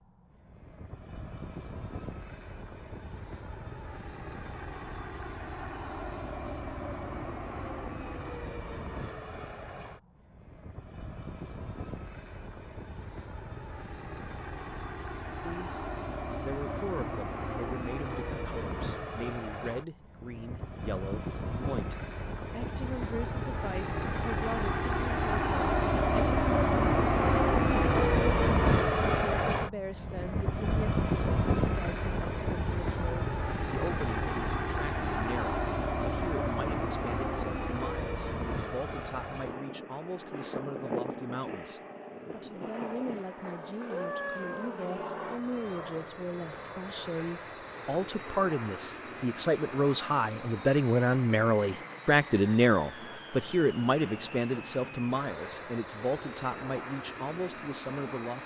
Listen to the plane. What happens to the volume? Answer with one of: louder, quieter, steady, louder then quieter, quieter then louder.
louder then quieter.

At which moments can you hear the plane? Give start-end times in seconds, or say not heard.
0.0-58.4.